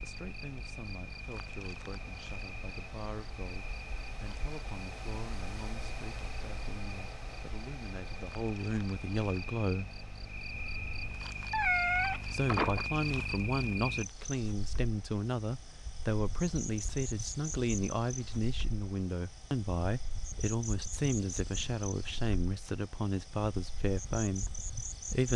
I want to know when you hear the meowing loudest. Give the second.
12 s.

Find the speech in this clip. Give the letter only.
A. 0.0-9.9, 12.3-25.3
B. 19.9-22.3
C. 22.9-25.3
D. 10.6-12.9
A.